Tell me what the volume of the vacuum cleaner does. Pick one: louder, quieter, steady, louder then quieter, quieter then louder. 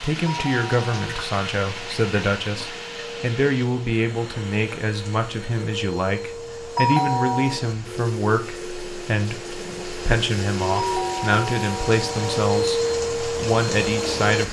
louder.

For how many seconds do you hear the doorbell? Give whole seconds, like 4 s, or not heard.
3 s.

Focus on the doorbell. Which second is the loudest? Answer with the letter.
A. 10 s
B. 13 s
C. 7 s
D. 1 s
C.